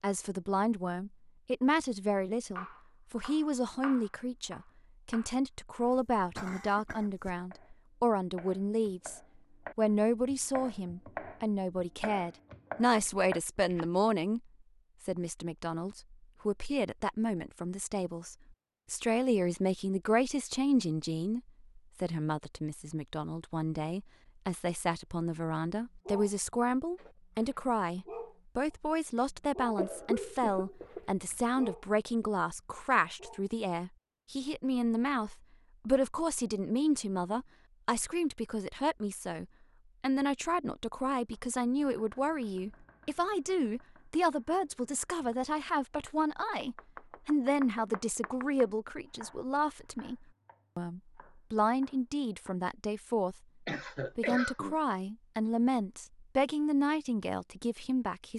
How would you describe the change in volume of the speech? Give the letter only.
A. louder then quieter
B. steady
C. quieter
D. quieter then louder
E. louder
B.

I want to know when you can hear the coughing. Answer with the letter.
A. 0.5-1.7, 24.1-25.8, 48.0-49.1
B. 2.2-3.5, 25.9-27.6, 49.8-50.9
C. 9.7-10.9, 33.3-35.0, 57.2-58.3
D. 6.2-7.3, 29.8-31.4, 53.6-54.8
D.